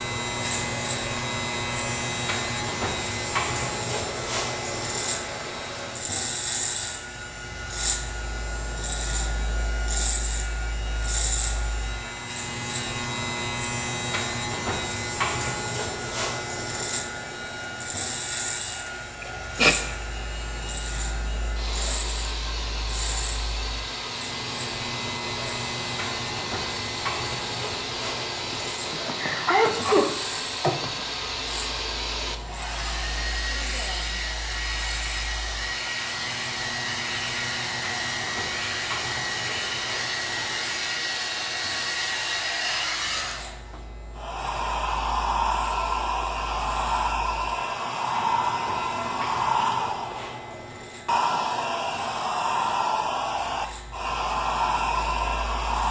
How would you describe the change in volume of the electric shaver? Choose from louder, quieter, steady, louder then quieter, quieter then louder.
quieter.